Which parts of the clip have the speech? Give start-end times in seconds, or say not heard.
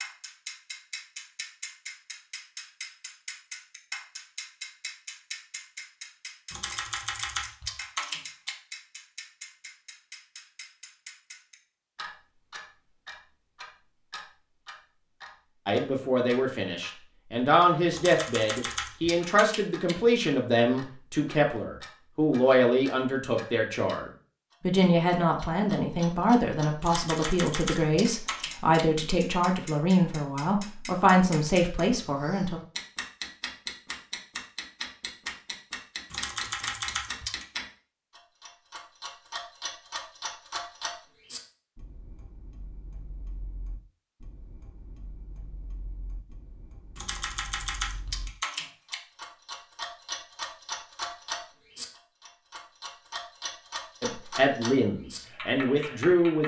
15.7-32.6, 54.0-56.4.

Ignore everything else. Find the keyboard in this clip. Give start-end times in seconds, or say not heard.
6.5-8.5, 17.9-19.9, 26.8-28.9, 36.1-37.6, 47.0-49.0.